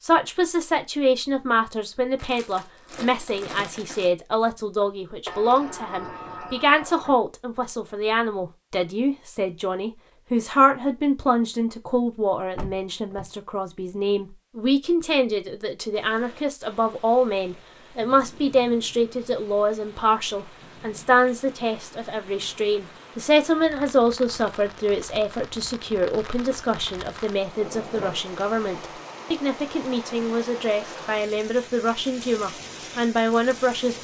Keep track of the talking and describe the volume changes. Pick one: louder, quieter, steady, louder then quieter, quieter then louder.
steady.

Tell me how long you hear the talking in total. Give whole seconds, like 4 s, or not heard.
34 s.